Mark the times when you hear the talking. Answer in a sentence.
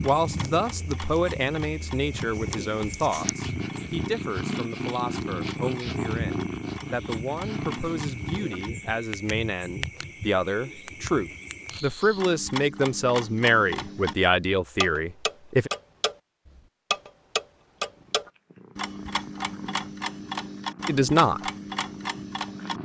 You can hear the talking from 0.0 to 15.7 s and from 20.9 to 21.4 s.